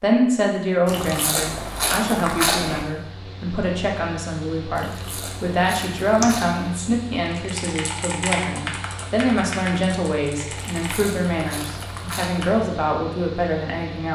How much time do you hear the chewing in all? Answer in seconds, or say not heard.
6 s.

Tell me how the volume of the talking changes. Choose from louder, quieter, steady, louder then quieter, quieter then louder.
steady.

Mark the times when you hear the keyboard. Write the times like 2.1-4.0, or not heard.
6.2-12.7.